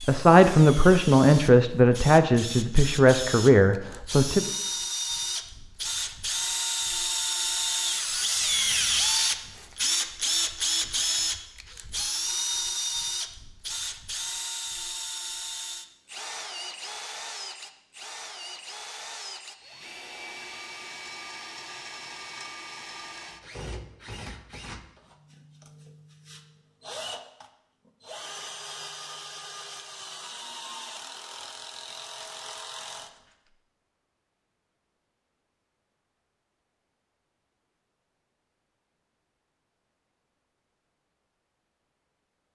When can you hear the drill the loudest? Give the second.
9 s.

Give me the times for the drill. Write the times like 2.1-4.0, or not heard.
0.0-33.5.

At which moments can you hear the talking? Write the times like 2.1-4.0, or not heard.
0.0-4.5.